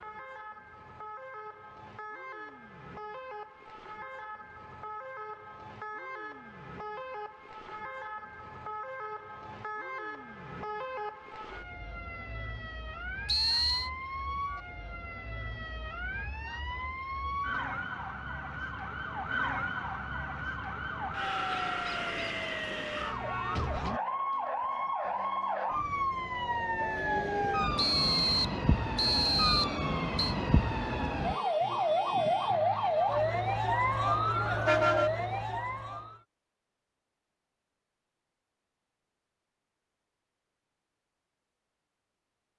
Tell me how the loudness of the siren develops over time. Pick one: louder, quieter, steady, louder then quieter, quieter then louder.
louder.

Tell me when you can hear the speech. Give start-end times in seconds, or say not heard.
not heard.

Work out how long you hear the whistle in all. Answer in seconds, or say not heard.
3 s.